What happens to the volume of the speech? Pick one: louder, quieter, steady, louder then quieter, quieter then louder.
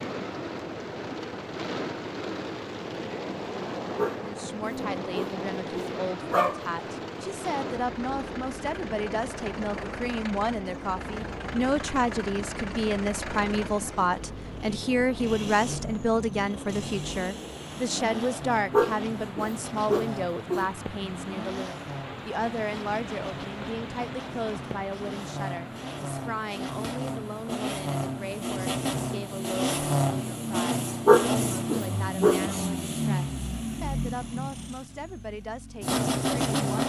louder then quieter.